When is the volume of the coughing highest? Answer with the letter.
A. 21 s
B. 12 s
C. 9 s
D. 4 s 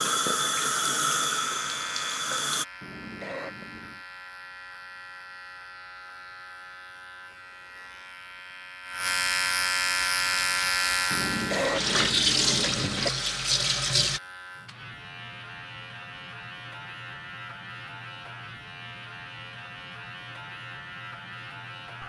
B.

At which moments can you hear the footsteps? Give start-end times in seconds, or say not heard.
not heard.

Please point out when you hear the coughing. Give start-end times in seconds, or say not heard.
2.8-4.0, 11.1-13.1.